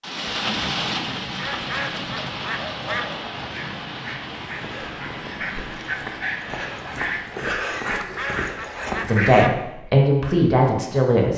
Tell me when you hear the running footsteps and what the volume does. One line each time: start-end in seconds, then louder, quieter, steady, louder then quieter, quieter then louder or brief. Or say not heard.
not heard.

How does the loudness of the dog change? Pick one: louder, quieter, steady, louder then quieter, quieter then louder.
louder.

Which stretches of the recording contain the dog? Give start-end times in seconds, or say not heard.
2.7-9.4.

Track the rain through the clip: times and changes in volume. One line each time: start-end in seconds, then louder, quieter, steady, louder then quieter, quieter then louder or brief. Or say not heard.
0.0-7.5 quieter.